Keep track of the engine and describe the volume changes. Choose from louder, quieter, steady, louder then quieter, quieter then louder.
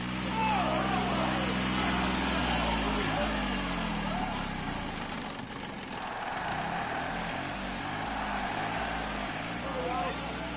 quieter.